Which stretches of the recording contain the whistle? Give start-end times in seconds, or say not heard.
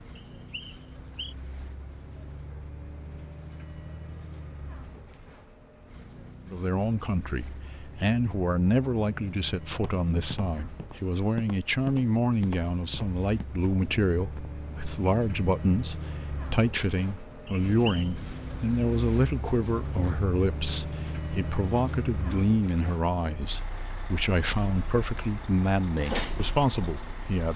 0.1-1.4, 17.4-18.1.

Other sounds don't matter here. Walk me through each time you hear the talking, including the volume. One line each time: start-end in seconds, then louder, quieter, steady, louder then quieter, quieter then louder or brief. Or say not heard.
6.5-27.5 steady.